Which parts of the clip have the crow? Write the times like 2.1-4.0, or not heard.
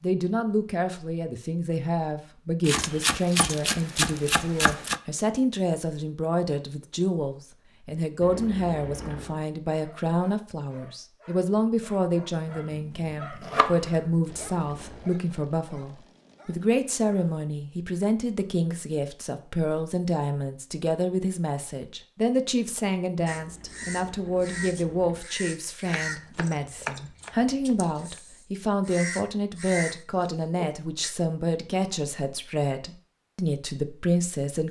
23.2-31.1.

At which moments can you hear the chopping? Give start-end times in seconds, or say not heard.
2.6-5.0, 12.5-14.0, 26.1-27.9.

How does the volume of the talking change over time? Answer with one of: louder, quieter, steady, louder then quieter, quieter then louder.
steady.